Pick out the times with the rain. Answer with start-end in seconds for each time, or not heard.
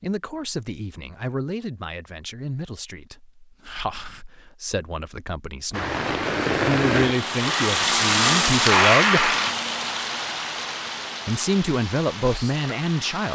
5.7-13.2.